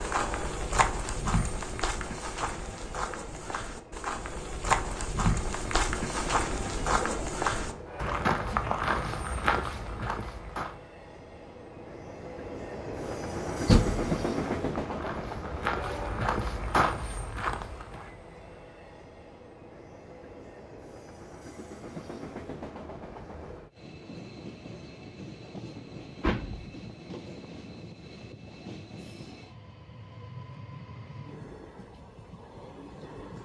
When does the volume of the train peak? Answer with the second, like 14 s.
14 s.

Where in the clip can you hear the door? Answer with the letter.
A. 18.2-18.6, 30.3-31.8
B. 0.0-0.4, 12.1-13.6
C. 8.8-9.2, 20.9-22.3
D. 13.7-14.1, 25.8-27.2
D.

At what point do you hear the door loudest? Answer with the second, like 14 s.
14 s.